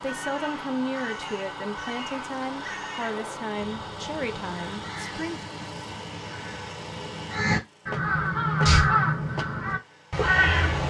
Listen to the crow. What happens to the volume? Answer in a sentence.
The volume of the crow goes up.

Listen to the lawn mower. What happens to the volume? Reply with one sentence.
The loudness of the lawn mower goes down.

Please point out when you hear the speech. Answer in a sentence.
You can hear the speech from 0.0 to 5.5 s.